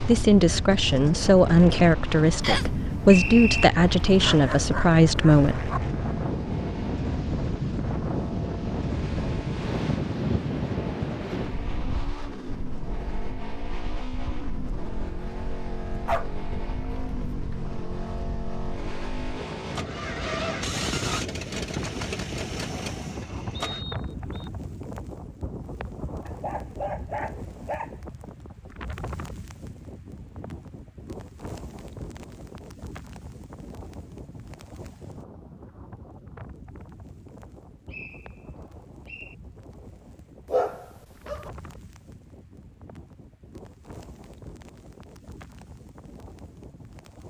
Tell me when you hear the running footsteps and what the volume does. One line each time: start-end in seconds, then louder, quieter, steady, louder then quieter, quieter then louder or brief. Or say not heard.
not heard.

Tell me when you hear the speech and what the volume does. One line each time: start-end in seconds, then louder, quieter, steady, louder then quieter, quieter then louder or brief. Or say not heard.
0.0-5.7 steady.